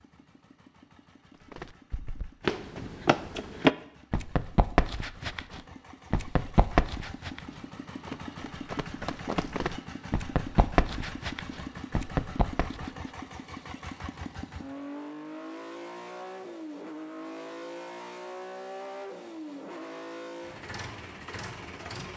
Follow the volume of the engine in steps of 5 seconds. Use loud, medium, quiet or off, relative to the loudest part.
quiet, loud, loud, loud, loud.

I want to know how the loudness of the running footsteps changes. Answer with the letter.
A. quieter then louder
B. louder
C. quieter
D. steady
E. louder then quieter
A.